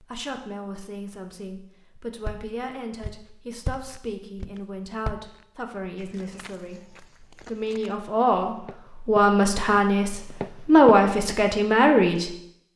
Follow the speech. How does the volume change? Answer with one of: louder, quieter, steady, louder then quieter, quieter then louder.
louder.